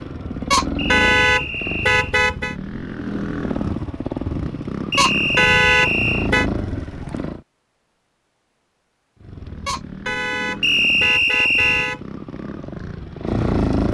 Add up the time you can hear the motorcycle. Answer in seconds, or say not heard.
12 s.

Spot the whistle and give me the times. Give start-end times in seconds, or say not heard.
0.8-2.1, 4.9-6.3, 10.6-11.9.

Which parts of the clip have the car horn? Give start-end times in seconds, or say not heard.
0.5-2.5, 5.0-6.5, 9.7-12.0.